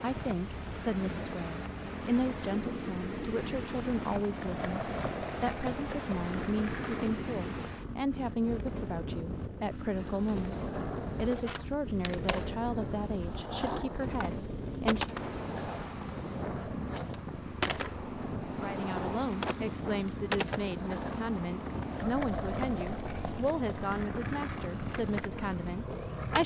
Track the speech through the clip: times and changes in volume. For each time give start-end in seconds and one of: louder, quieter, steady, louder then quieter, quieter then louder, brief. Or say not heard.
0.0-15.2 steady
18.6-26.4 steady.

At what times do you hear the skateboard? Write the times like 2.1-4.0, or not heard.
4.0-7.2, 9.9-26.4.